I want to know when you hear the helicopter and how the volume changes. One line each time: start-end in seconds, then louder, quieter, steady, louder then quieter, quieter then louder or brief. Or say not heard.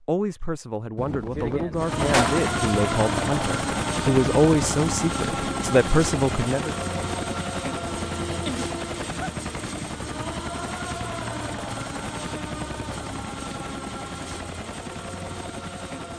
1.8-16.1 quieter.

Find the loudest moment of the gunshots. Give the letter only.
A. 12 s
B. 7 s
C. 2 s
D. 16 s
C.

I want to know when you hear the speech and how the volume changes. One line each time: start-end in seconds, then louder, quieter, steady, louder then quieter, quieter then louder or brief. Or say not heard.
0.0-6.8 louder.